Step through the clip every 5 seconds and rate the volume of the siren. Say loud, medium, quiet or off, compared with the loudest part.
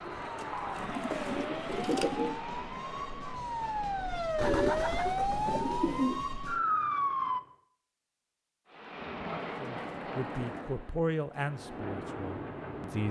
medium, loud, off.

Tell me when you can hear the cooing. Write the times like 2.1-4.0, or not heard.
0.1-2.4, 4.3-6.2, 9.2-10.6.